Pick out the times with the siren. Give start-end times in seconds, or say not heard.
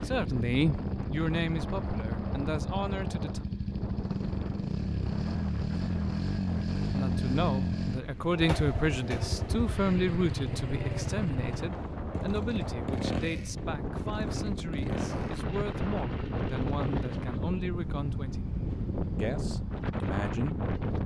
not heard.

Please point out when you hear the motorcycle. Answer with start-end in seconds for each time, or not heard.
0.0-21.0.